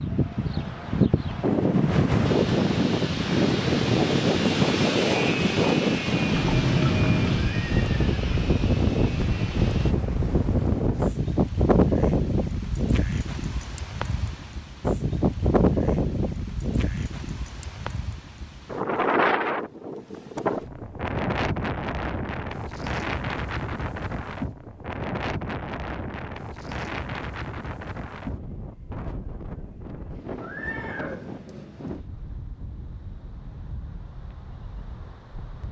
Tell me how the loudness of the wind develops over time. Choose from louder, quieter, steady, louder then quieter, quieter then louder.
quieter.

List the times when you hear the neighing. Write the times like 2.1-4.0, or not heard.
7.4-8.4, 30.4-31.8.